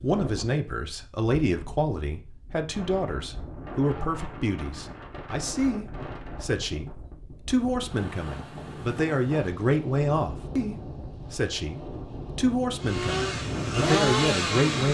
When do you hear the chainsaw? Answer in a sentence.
The chainsaw can be heard from 12.8 to 14.8 s.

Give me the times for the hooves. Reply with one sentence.
The hooves can't be heard in this clip.